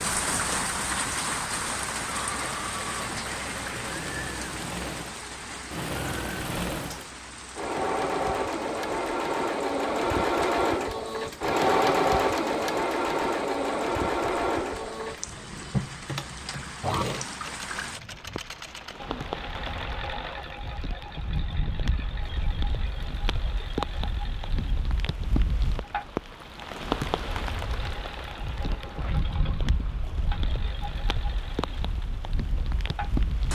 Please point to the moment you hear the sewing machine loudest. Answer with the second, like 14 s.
12 s.